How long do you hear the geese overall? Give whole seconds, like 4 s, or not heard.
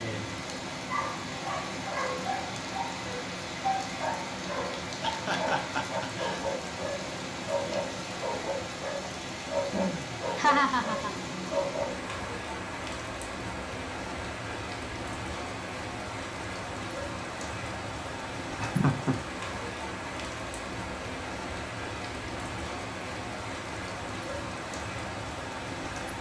not heard.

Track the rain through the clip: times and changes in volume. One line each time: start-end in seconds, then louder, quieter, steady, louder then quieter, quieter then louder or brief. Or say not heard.
0.0-26.1 steady.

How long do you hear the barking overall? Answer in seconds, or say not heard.
11 s.